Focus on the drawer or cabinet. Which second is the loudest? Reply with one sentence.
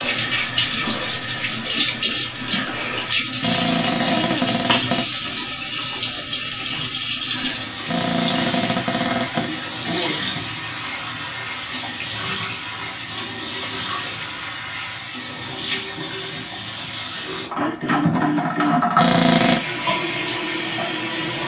The volume of the drawer or cabinet peaks at 19 seconds.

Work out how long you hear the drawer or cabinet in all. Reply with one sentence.
You can hear the drawer or cabinet for 4 seconds altogether.